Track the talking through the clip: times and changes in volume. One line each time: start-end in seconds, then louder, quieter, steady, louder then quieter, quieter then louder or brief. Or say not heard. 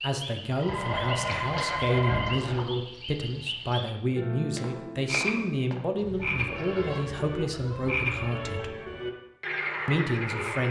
0.0-8.8 steady
9.8-10.6 brief.